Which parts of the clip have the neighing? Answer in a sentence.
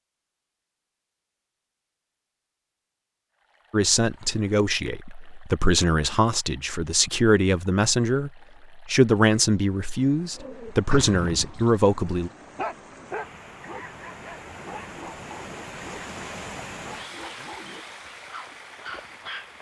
The neighing can't be heard in this clip.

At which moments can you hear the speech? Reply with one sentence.
You can hear the speech from 3.7 to 12.3 s.